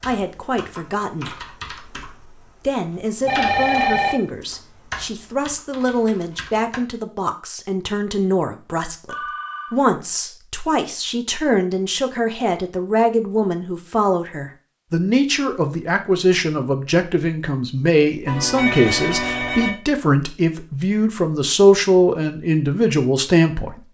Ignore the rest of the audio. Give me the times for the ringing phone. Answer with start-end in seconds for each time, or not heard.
3.2-4.2, 9.1-9.8, 18.2-19.7.